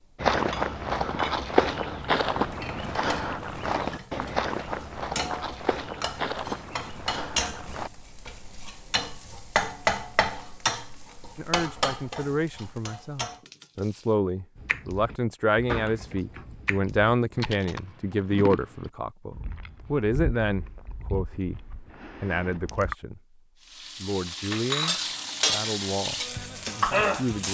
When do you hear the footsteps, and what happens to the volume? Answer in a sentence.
The footsteps can be heard from 0.2 to 7.9 s, getting quieter.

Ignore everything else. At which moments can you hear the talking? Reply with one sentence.
You can hear the talking from 11.3 to 23.4 s and from 24.0 to 27.4 s.